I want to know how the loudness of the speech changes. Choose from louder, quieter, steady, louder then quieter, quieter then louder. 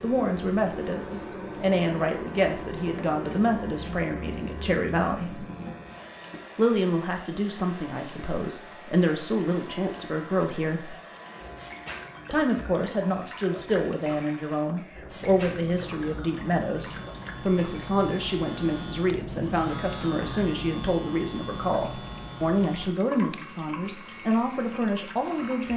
steady.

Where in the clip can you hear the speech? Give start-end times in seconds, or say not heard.
0.0-5.5, 6.5-10.9, 12.3-25.7.